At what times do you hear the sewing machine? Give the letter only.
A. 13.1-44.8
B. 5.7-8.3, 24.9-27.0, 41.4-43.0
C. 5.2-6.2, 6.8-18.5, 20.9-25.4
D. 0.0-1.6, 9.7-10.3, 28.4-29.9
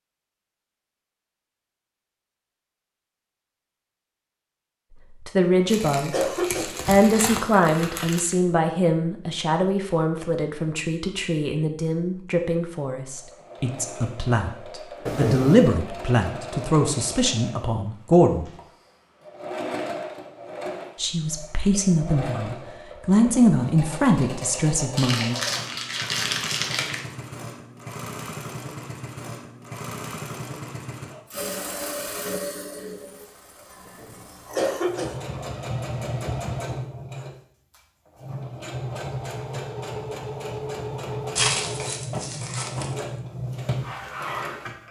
A.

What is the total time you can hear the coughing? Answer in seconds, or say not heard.
4 s.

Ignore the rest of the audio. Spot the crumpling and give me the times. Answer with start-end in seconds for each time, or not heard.
5.7-8.3, 24.9-27.0, 41.4-43.0.